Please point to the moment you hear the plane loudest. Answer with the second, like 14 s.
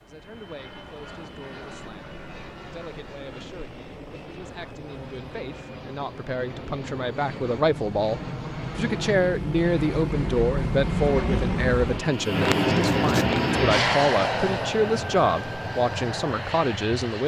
13 s.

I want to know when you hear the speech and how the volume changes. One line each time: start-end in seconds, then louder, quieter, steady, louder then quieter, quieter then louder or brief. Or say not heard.
0.1-17.2 louder.